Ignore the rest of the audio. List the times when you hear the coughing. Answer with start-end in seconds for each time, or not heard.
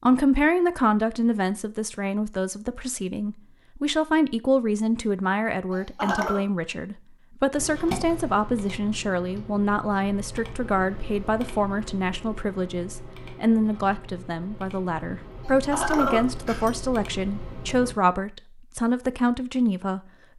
5.7-6.5, 15.4-16.7.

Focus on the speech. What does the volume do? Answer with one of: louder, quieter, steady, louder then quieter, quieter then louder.
steady.